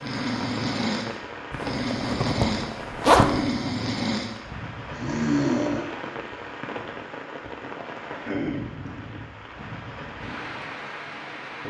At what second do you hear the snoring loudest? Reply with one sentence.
The loudest moment of the snoring is at 5 seconds.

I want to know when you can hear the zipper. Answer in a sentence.
The zipper can be heard from 1.5 to 3.4 s.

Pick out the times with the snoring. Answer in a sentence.
The snoring can be heard from 0.0 to 5.9 s.